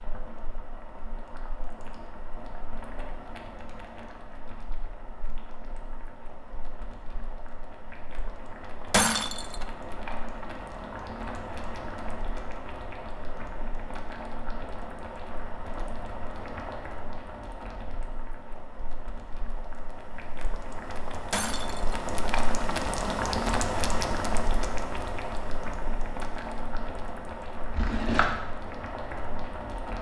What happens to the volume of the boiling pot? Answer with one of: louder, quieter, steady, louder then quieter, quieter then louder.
louder.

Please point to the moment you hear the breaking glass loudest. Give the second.
9 s.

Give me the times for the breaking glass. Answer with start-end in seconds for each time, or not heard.
8.9-9.7, 21.3-22.1.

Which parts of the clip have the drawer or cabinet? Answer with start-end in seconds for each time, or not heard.
27.7-28.3.